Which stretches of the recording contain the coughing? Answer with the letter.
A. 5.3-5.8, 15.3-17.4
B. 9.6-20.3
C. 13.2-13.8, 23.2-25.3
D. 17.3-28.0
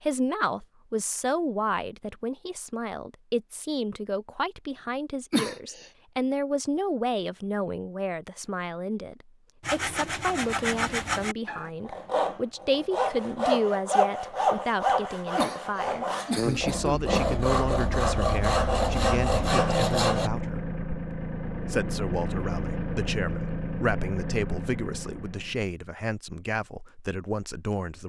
A.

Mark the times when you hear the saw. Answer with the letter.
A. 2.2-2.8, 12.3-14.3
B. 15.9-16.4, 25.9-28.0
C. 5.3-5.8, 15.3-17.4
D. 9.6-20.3
D.